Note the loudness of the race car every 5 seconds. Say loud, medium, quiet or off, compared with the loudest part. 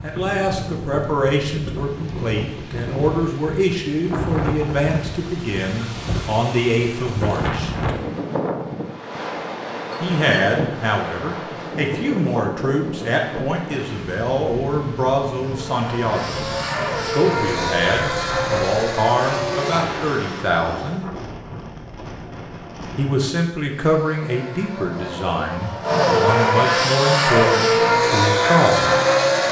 off, off, off, medium, quiet, loud.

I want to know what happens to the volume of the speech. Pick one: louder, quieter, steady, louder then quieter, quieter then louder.
steady.